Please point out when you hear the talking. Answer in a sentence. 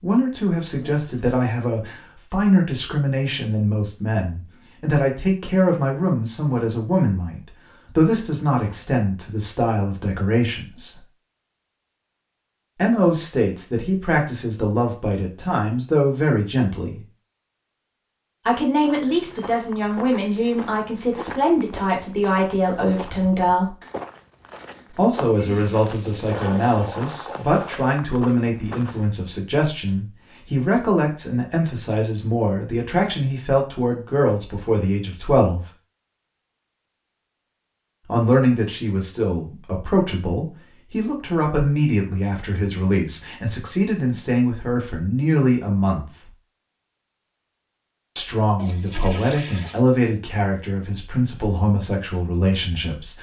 The talking can be heard from 0.0 to 11.0 s, from 12.8 to 17.0 s, from 18.4 to 23.8 s, from 24.9 to 35.6 s, from 38.0 to 46.3 s and from 48.1 to 53.1 s.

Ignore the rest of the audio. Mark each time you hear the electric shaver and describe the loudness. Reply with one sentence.
You can't hear the electric shaver here.